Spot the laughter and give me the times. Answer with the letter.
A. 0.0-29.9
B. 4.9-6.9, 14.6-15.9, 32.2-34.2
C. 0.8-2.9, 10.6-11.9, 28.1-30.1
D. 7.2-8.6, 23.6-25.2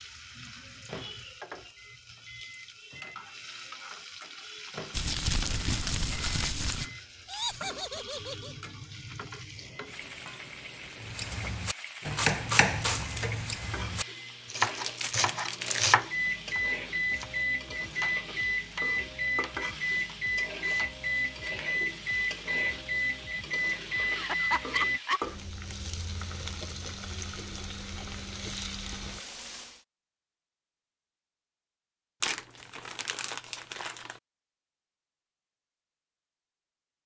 D.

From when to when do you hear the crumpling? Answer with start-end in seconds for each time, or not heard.
4.9-6.9, 14.6-15.9, 32.2-34.2.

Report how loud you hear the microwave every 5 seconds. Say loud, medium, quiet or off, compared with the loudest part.
quiet, quiet, quiet, loud, loud, off, off, off.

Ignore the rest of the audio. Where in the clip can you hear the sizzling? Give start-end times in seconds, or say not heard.
0.0-29.9.